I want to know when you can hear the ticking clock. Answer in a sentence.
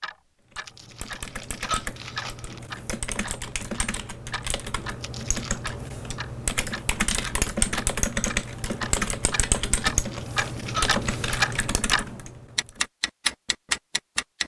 The ticking clock can be heard from 0.0 to 14.4 s.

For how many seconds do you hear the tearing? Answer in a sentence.
The tearing can be heard for 4 seconds in total.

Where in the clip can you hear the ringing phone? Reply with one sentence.
The ringing phone can't be heard in this clip.